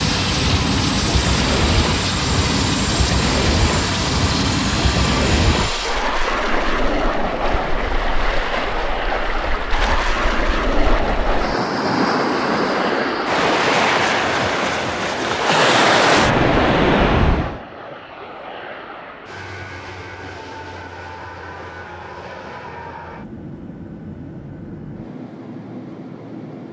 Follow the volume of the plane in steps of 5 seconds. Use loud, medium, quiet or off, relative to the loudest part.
loud, loud, loud, medium, medium, medium.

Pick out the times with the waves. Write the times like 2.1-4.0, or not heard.
0.0-17.6.